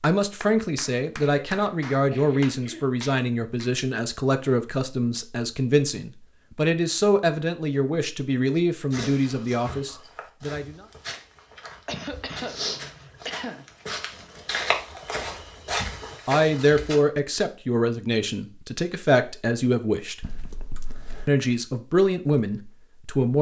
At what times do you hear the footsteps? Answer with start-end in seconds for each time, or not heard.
8.9-17.0.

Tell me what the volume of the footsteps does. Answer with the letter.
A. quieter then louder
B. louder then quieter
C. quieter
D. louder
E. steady
D.